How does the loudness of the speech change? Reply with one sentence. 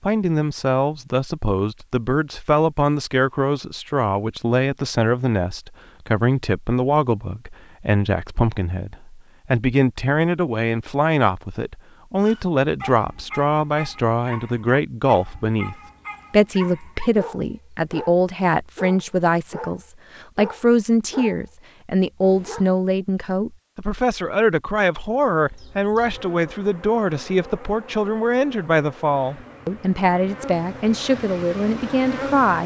The loudness of the speech stays about the same.